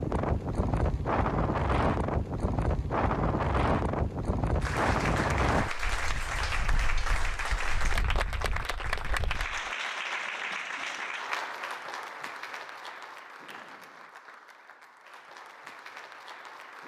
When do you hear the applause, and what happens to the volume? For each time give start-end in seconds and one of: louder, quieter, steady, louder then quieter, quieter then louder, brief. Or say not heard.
4.6-16.8 quieter.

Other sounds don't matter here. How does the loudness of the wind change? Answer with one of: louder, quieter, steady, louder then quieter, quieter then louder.
quieter.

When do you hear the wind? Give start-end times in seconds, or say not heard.
0.0-9.7.